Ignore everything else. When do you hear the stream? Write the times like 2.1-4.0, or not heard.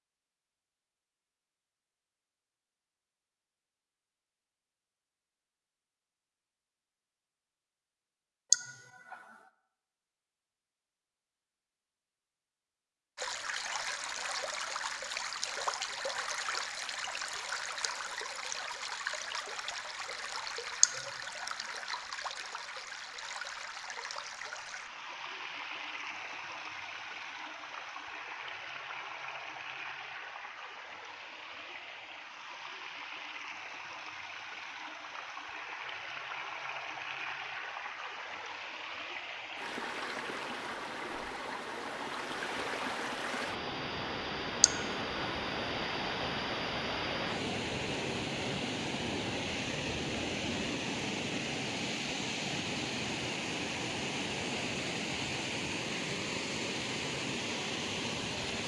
13.2-58.6.